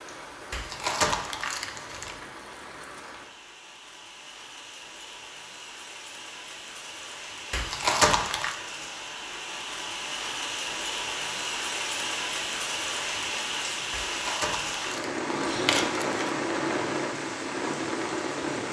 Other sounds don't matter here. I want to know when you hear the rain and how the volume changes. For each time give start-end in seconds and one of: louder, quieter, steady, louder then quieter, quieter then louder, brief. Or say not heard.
0.0-18.6 louder.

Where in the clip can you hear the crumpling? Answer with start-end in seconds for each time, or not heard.
0.5-2.1, 7.5-8.6, 13.9-16.2.